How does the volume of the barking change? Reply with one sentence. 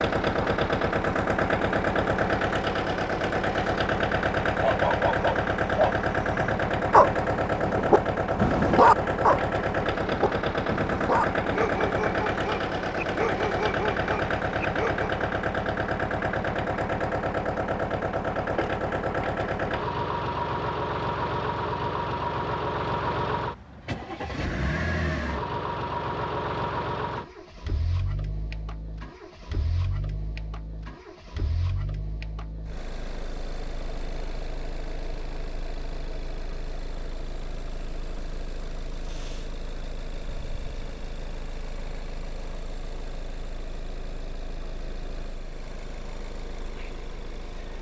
The loudness of the barking goes down.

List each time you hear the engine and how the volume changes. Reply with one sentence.
You can hear the engine from 0.0 to 47.7 s, getting quieter.